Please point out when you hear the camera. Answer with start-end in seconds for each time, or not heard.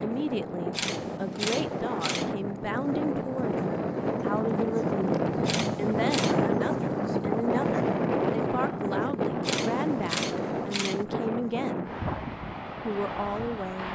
0.7-2.4, 5.4-6.4, 9.4-11.1.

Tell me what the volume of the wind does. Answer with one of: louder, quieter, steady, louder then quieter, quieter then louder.
louder then quieter.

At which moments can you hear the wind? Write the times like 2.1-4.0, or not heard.
0.0-13.9.